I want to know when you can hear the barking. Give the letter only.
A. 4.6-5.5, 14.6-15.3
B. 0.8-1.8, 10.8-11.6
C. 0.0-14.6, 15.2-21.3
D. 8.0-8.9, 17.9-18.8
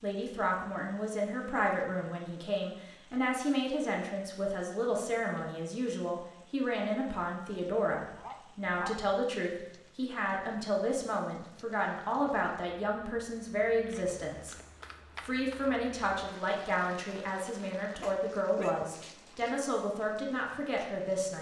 D.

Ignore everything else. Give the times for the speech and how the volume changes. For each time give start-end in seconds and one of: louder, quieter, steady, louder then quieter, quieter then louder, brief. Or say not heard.
0.0-14.6 steady
15.2-21.3 steady.